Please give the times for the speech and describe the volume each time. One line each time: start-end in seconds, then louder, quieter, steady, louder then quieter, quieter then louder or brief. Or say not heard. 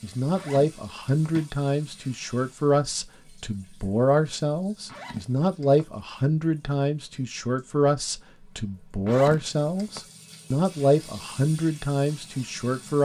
0.0-13.0 steady.